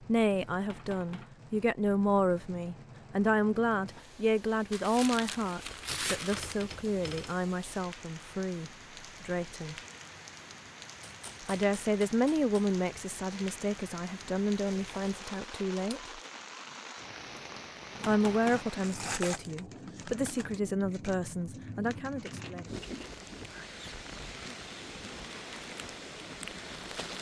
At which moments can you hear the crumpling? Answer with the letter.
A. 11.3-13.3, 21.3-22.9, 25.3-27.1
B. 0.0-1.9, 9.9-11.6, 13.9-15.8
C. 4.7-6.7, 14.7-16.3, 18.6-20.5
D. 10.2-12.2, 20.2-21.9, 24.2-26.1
C.